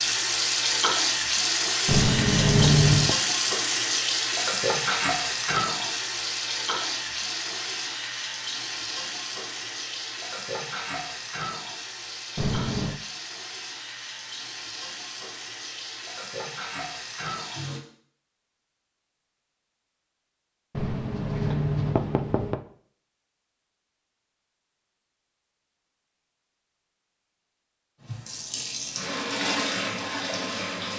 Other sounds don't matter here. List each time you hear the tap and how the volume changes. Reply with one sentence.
You can hear the tap from 0.0 to 17.8 s, getting quieter; and briefly from 28.0 to 30.9 s.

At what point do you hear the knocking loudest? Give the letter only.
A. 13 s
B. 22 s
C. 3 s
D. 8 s
C.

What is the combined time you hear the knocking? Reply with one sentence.
The knocking can be heard for 4 seconds in total.